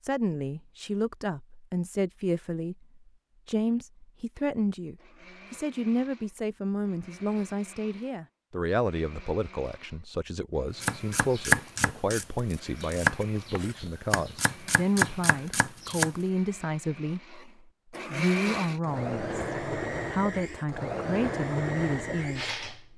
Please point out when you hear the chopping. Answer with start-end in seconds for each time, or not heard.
10.8-16.1.